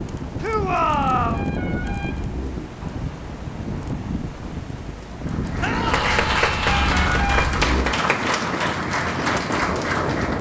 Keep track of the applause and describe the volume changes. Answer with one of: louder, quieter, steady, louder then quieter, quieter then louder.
steady.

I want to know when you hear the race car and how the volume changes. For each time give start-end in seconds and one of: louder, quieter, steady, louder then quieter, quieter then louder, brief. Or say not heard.
not heard.